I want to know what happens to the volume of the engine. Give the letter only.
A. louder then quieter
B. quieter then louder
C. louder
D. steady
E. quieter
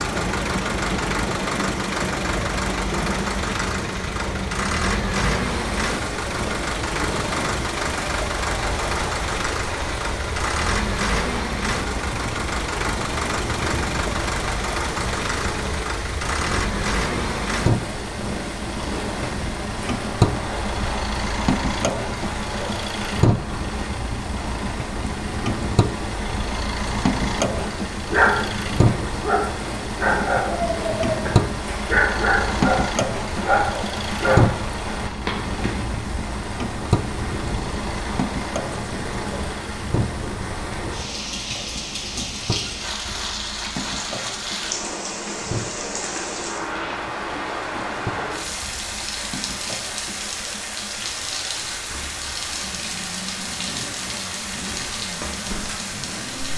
E.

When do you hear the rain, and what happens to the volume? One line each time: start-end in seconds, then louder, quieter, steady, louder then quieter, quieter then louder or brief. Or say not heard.
0.0-56.5 steady.